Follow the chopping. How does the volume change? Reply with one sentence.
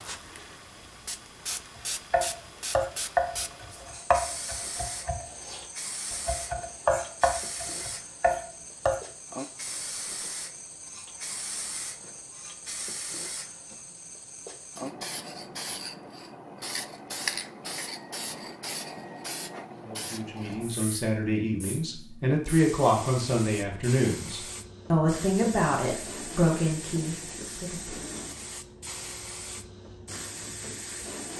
The volume of the chopping goes down, then up.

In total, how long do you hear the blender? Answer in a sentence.
You can't hear the blender here.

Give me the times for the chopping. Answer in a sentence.
The chopping can be heard from 1.8 to 9.0 s.